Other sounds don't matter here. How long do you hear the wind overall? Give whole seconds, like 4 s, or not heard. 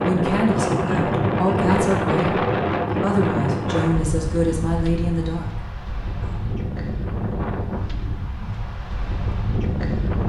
10 s.